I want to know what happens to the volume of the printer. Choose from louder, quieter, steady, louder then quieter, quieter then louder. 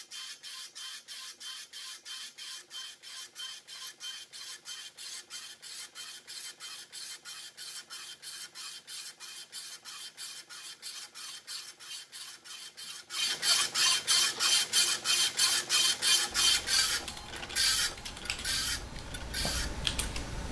louder.